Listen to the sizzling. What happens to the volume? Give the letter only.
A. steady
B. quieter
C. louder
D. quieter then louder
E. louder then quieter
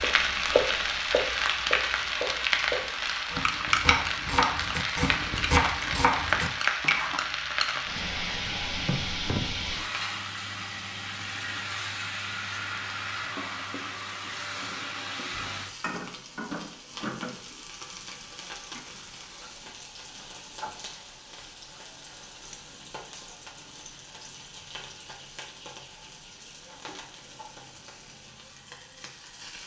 B.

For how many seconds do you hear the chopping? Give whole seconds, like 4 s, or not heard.
7 s.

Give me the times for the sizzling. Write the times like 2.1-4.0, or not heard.
0.0-29.6.